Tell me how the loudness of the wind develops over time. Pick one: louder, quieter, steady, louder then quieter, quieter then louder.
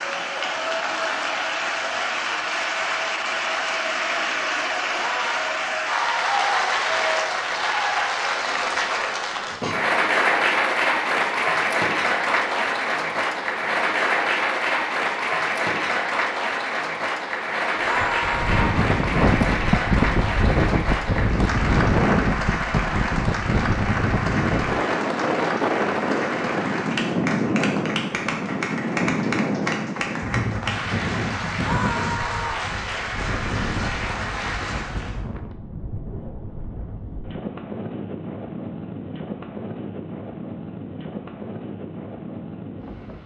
quieter.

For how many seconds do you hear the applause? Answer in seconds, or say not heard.
35 s.